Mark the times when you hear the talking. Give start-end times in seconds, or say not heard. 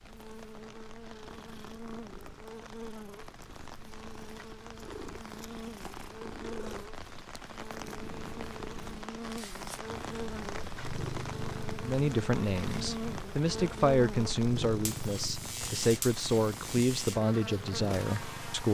11.8-18.7.